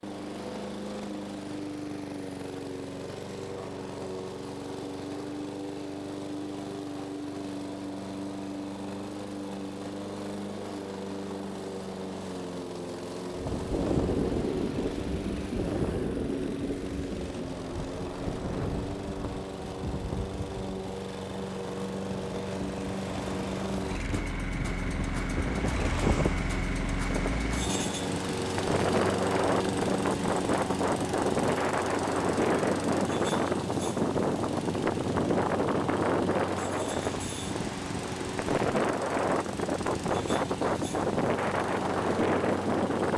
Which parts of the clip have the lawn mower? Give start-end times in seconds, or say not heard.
0.0-43.1.